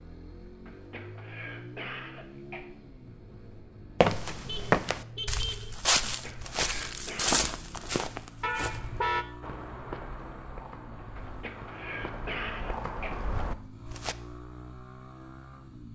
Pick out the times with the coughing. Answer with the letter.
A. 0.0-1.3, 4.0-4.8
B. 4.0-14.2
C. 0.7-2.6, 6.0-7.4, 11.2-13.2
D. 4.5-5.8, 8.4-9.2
C.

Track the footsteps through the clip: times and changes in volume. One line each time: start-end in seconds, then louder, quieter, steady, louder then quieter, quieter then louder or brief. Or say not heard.
4.0-14.2 quieter then louder.